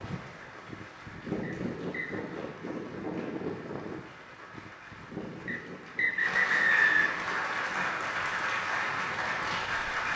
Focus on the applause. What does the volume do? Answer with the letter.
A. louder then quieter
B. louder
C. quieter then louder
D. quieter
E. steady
B.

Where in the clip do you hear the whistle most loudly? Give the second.
7 s.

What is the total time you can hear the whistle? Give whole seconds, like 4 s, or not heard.
3 s.